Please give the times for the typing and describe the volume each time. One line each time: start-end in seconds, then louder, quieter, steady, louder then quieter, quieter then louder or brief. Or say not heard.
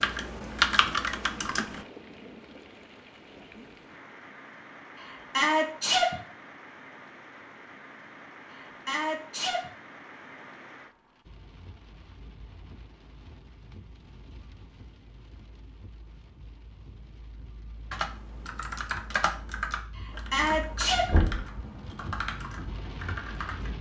0.0-1.9 brief
17.9-23.7 quieter.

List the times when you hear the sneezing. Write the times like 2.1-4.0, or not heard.
5.0-6.2, 8.5-9.7, 19.9-21.2.